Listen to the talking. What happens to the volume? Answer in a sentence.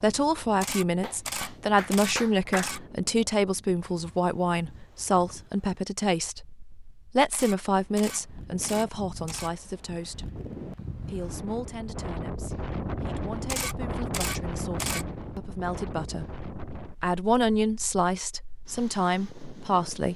The volume of the talking goes down, then up.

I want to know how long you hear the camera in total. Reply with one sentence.
You can hear the camera for 6 seconds altogether.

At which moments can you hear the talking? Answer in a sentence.
The talking can be heard from 0.0 to 10.2 s and from 11.1 to 20.1 s.